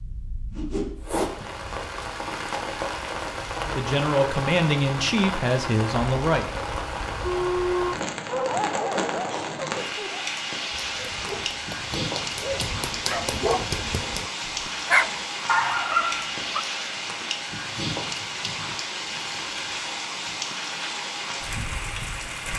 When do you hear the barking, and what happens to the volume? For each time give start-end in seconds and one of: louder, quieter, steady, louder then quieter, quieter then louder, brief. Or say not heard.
7.2-16.6 quieter then louder.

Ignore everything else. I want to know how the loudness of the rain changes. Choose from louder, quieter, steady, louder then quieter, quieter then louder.
steady.